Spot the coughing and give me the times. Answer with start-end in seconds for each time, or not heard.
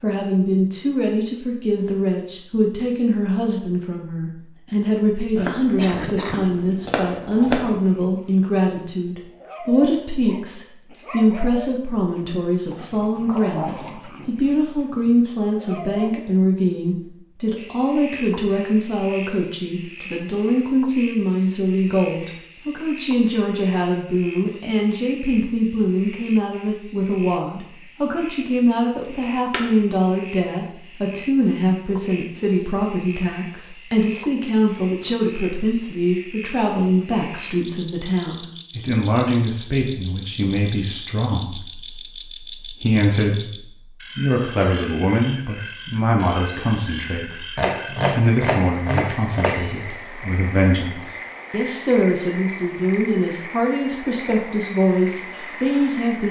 5.3-6.5.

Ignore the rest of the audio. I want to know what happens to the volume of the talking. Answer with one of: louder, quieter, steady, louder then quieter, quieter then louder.
steady.